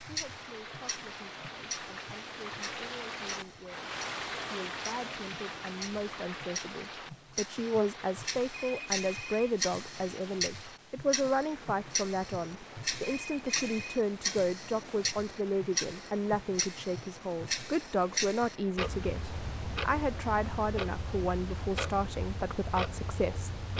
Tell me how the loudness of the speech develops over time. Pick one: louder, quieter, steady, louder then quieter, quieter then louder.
louder.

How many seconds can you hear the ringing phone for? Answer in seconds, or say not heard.
2 s.